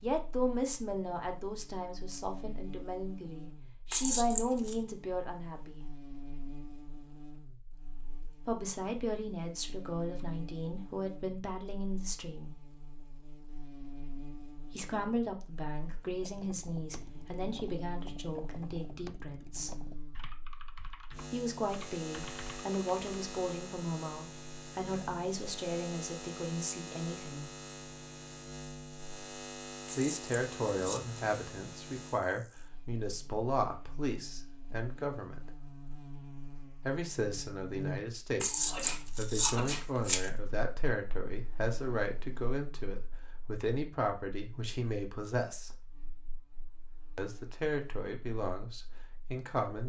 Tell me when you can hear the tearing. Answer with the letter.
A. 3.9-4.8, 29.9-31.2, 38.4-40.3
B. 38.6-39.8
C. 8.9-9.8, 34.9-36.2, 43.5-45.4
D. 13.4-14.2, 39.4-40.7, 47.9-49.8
A.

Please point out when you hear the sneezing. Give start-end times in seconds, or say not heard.
38.6-39.8.